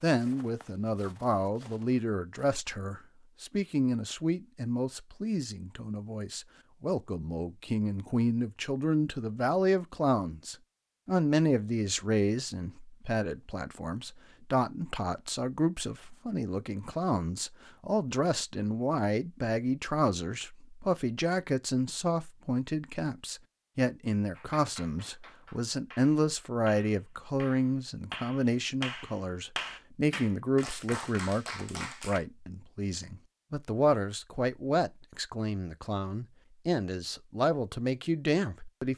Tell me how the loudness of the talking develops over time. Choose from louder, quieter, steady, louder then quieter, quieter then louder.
steady.